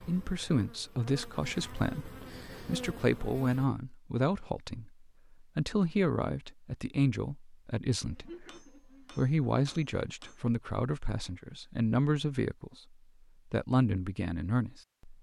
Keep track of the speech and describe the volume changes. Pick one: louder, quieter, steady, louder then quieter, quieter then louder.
steady.